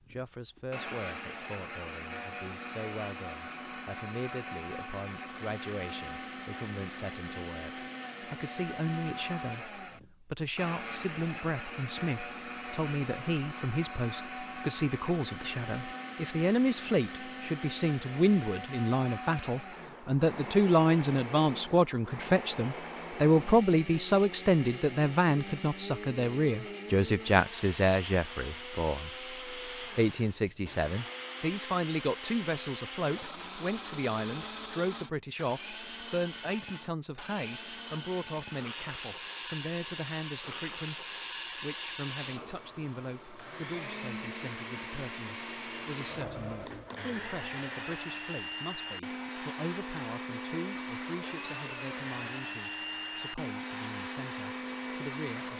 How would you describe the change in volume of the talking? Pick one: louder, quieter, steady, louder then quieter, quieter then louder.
louder then quieter.